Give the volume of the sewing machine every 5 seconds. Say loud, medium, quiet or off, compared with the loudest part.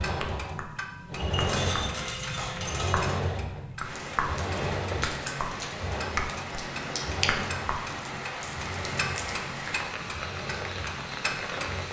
loud, medium, medium.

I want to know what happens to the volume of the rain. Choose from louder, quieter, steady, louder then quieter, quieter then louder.
steady.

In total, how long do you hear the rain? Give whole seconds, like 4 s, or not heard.
8 s.